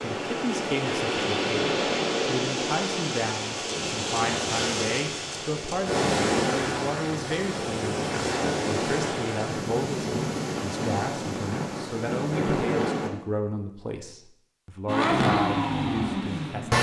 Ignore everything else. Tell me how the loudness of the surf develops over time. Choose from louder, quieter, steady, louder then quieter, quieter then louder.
steady.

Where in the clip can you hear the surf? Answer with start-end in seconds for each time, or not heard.
0.0-13.1.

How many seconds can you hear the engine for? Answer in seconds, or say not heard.
2 s.